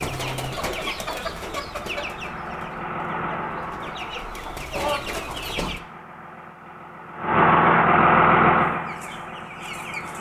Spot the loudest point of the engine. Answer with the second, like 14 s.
8 s.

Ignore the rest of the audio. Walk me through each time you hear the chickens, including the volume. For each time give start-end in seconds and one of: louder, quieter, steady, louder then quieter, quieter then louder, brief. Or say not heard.
0.0-5.8 quieter then louder
8.7-10.1 brief.